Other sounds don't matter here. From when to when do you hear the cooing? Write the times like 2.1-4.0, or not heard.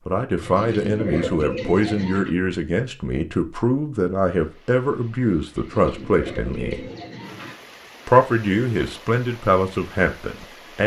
0.4-2.3, 5.5-7.5.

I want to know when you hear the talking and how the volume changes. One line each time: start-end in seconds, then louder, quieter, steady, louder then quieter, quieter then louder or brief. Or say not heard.
0.1-6.9 steady
8.1-10.8 brief.